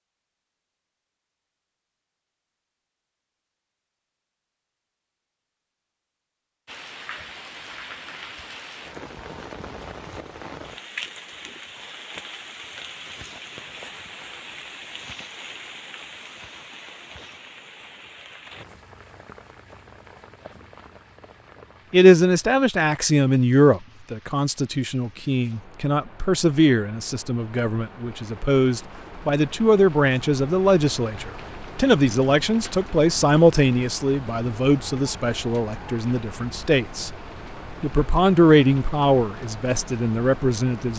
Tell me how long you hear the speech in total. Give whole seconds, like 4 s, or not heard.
18 s.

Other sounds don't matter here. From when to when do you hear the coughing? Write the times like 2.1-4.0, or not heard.
not heard.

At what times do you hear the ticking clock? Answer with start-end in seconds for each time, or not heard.
not heard.